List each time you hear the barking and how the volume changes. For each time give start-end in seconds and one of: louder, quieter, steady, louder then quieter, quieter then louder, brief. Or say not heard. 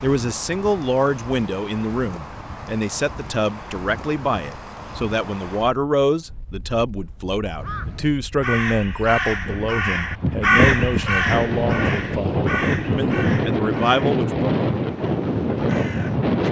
not heard.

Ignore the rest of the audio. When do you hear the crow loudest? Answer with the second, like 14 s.
11 s.